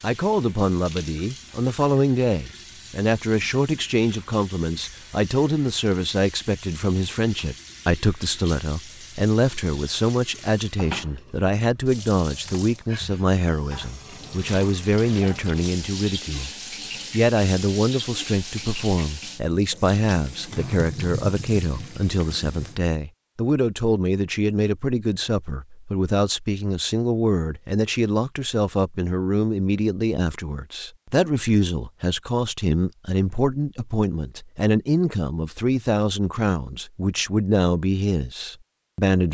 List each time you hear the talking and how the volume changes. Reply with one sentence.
You can hear the talking from 0.0 to 16.5 s, at a steady volume; and from 17.1 to 39.3 s, at a steady volume.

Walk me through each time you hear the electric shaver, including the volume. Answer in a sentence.
The electric shaver can't be heard in this clip.